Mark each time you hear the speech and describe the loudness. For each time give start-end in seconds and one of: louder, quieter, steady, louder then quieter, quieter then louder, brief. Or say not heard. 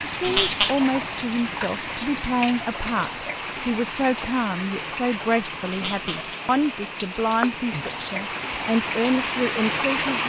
0.1-10.2 steady.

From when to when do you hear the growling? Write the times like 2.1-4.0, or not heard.
0.2-0.8, 5.7-6.3.